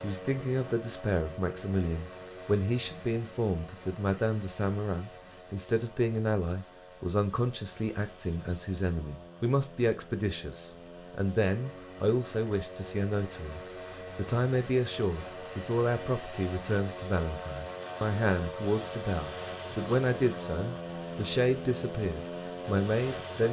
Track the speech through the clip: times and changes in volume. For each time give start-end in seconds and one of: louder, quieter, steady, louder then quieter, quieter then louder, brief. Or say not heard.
0.0-23.4 steady.